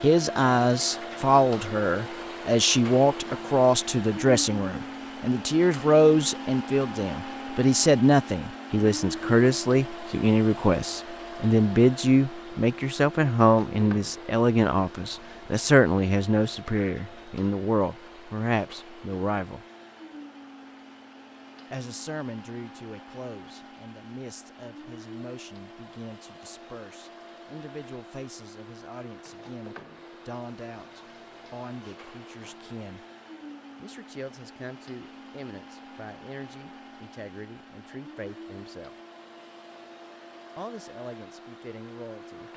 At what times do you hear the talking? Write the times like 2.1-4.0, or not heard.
0.0-19.6, 21.7-33.0, 33.8-39.0, 40.5-42.5.